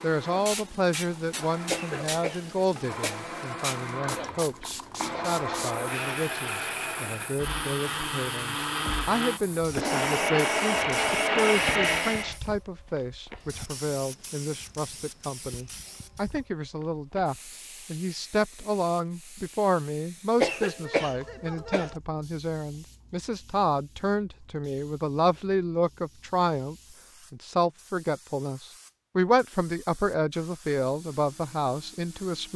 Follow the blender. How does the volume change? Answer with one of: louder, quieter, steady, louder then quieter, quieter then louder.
louder.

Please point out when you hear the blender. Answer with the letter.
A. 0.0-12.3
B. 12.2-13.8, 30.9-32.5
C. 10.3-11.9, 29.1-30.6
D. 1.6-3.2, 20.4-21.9
A.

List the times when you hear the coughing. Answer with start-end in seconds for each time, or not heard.
1.6-3.2, 20.4-21.9.